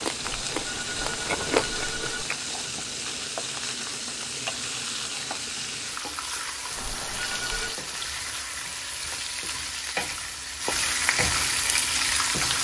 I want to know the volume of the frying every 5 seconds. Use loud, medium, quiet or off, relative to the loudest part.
medium, medium, loud.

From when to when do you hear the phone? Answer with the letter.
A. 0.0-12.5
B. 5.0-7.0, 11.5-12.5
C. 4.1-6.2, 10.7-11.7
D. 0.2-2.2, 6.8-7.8
D.